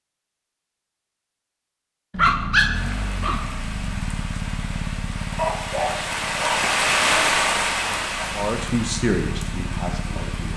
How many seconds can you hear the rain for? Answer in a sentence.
You can hear the rain for 8 seconds altogether.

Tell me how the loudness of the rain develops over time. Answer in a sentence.
The volume of the rain goes up, then down.